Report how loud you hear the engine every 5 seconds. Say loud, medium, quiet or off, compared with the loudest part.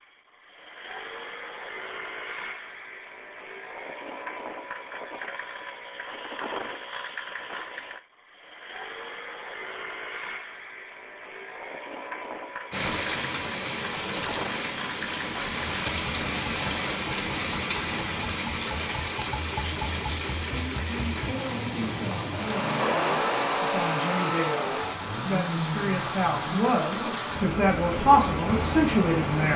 medium, medium, medium, medium, loud, medium.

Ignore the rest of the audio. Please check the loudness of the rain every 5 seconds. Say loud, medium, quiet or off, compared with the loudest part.
off, off, loud, loud, medium, loud.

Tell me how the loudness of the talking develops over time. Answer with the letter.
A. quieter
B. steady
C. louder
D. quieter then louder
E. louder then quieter
C.